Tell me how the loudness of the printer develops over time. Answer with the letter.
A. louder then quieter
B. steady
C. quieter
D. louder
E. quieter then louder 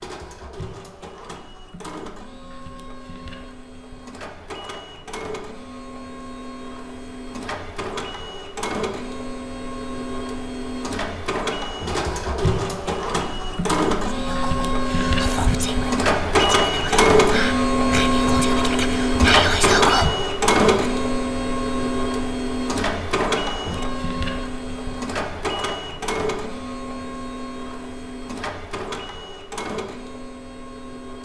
A.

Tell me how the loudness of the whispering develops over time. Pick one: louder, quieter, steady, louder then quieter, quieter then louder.
louder.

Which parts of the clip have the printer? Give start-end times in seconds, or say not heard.
0.0-31.1.